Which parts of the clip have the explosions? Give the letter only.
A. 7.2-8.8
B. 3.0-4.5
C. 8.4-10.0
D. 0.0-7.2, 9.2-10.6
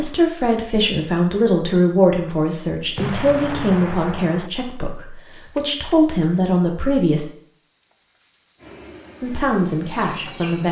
B.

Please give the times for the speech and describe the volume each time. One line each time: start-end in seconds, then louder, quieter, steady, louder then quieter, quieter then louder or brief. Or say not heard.
0.0-7.2 quieter then louder
9.2-10.6 brief.